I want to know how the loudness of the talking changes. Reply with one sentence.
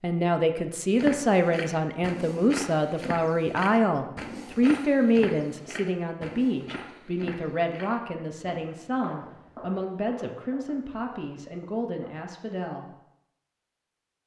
The loudness of the talking goes down.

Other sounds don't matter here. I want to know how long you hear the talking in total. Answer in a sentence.
You can hear the talking for 13 seconds altogether.